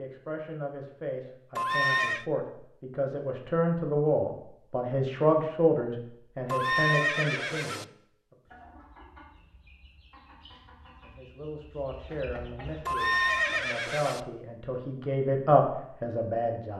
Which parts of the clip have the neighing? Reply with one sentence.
The neighing can be heard from 1.6 to 2.2 s, from 6.5 to 7.8 s and from 12.8 to 14.2 s.